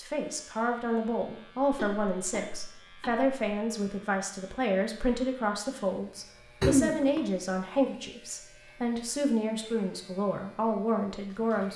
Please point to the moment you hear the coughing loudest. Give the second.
7 s.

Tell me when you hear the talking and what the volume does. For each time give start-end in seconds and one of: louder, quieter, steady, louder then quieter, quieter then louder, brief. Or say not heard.
0.0-11.7 steady.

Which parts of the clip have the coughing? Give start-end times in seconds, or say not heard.
1.7-3.4, 6.6-7.2.